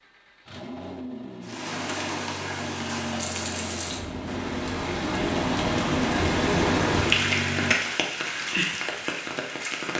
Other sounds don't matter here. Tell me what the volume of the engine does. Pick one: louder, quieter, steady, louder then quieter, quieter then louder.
louder.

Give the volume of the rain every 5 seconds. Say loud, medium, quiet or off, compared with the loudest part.
medium, loud.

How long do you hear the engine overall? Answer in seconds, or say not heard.
8 s.